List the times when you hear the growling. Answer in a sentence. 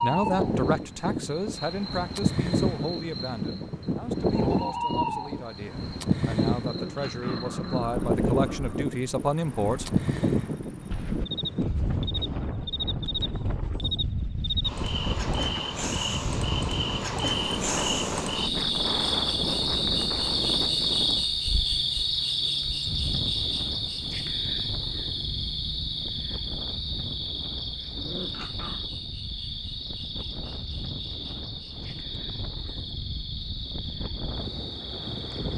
The growling can be heard from 6.6 to 8.9 s and from 27.9 to 28.9 s.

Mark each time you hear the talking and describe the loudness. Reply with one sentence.
You can hear the talking from 0.0 to 10.0 s, getting quieter then louder.